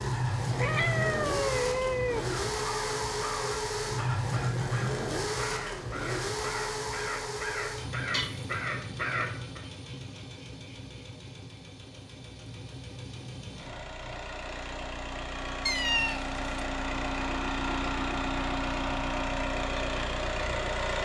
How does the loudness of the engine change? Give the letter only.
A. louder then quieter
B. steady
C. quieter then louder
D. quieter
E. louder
C.